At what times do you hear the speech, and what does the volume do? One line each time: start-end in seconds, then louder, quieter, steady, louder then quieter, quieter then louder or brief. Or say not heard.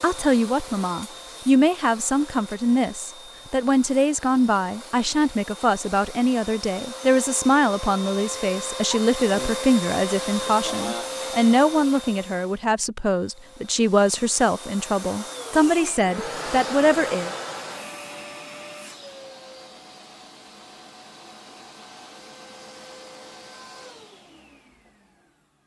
0.0-17.3 steady.